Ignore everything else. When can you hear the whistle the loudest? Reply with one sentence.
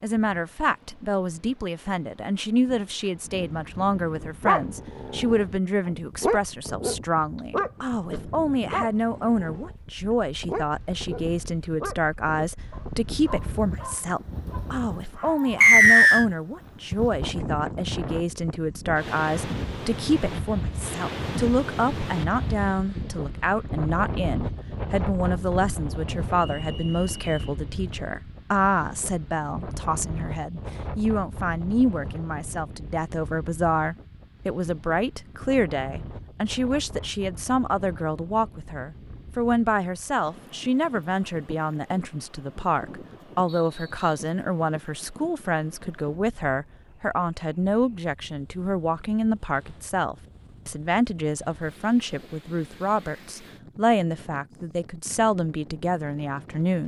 The loudest moment of the whistle is at 16 seconds.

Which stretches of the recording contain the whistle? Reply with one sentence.
You can hear the whistle from 15.6 to 16.2 s, from 26.4 to 27.6 s and from 43.5 to 44.1 s.